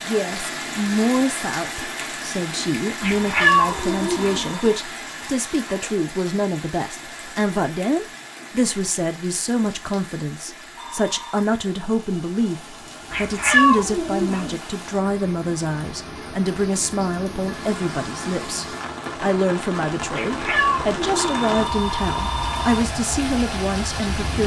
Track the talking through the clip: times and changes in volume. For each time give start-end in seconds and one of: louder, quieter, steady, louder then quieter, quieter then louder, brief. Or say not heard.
0.1-24.4 steady.